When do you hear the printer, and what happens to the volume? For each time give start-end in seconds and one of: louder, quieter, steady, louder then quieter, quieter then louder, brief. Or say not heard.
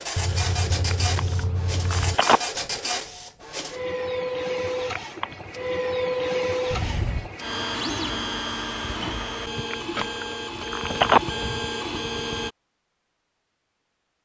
0.0-12.5 steady.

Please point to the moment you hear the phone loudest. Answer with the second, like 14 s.
11 s.